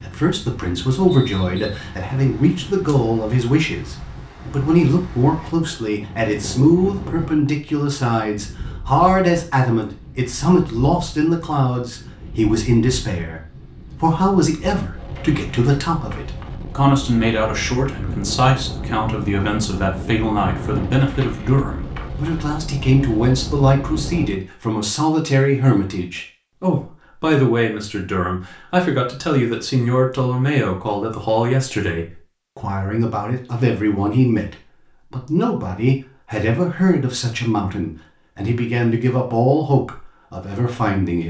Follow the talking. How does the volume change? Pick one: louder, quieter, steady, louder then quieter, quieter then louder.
steady.